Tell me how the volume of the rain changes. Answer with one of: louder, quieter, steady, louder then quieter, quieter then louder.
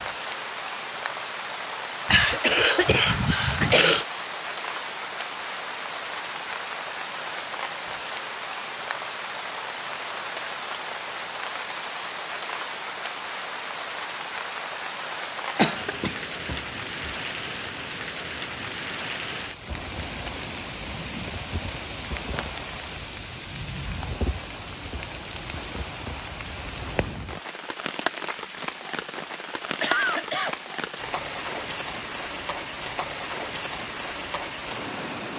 steady.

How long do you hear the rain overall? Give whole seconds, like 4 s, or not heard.
35 s.